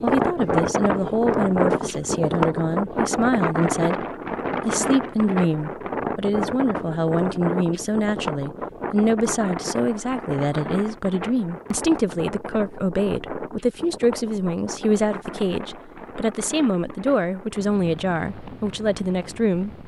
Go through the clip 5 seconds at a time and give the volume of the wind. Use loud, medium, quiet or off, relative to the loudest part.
loud, medium, medium, quiet.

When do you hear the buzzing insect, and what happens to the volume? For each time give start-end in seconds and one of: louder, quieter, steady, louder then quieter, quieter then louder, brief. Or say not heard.
not heard.